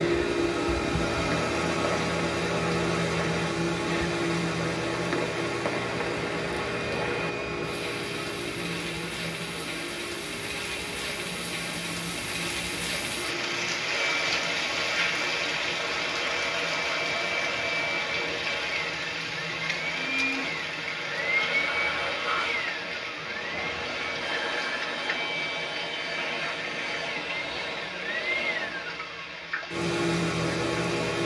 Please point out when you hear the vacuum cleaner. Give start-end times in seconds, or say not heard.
0.0-31.2.